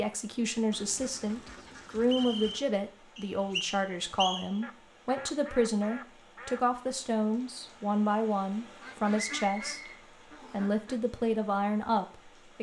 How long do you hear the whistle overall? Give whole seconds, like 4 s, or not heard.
3 s.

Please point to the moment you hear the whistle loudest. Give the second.
4 s.